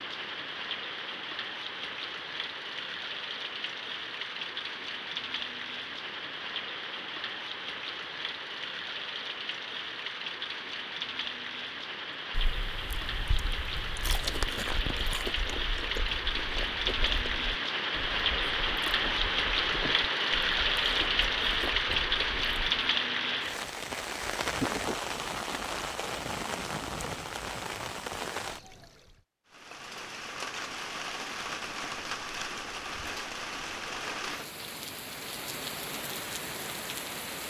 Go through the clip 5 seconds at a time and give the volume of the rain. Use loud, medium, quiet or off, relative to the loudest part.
medium, medium, medium, loud, loud, medium, medium, medium.